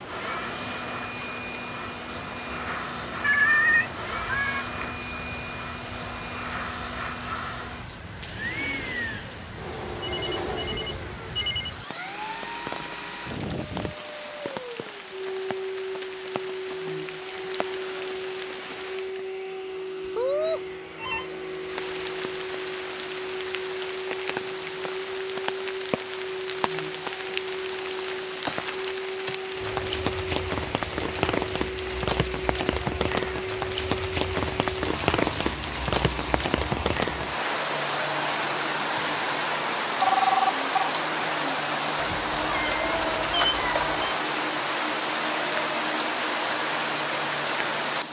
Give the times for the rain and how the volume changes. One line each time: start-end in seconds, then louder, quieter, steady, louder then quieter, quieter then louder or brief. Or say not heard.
0.0-48.0 louder.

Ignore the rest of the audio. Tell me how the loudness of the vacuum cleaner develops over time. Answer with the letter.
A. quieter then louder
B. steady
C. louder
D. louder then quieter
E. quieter
B.